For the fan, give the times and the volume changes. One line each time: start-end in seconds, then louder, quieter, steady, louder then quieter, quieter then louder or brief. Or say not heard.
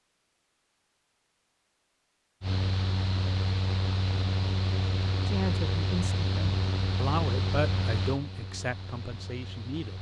2.4-9.9 quieter.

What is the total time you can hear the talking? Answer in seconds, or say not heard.
5 s.